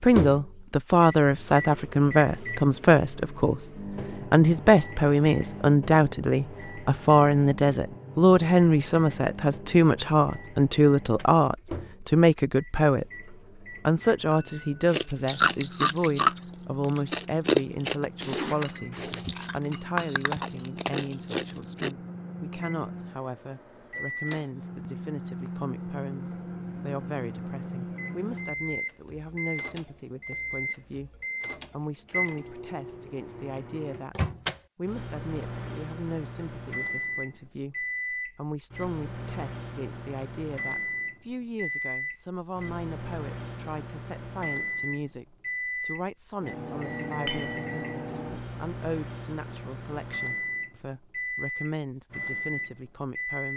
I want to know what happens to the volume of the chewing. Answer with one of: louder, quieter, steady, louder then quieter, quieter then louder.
quieter.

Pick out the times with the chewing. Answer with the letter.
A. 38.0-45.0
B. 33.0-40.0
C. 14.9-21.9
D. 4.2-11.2
C.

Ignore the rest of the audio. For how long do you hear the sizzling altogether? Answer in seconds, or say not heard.
not heard.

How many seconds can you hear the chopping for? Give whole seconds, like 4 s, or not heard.
not heard.